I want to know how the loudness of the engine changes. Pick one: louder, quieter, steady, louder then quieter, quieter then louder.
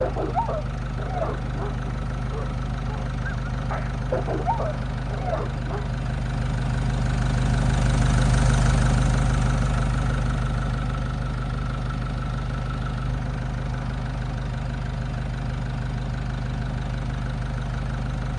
louder then quieter.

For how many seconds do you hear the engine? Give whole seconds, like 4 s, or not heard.
18 s.